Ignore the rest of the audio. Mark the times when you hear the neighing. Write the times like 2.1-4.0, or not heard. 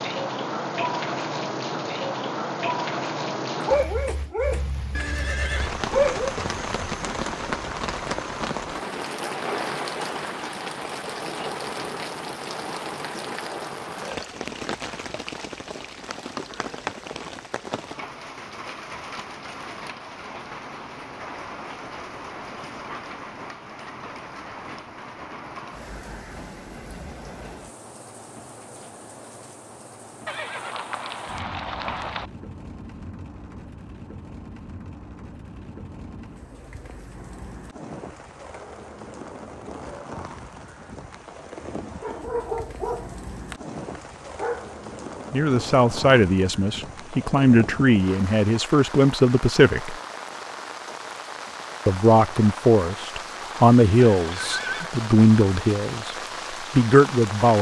5.0-5.7, 30.2-32.2, 54.1-54.9.